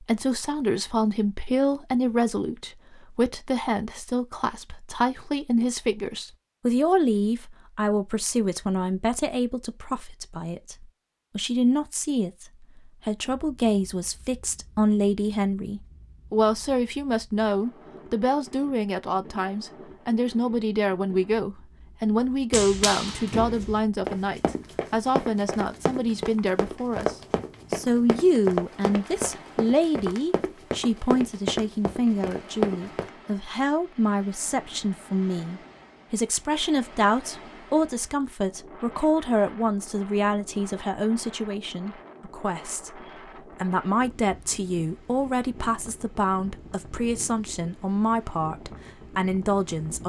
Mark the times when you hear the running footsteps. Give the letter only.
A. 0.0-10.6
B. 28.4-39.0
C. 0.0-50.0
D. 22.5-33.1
D.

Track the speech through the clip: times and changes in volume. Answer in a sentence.
You can hear the speech from 0.0 to 50.0 s, at a steady volume.